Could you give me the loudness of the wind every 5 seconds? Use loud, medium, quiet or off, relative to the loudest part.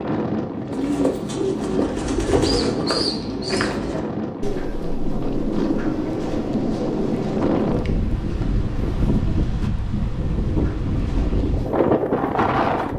medium, loud, loud.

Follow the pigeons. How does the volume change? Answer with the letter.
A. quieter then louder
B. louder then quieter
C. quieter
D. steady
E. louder
C.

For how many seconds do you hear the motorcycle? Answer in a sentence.
The motorcycle can't be heard in this clip.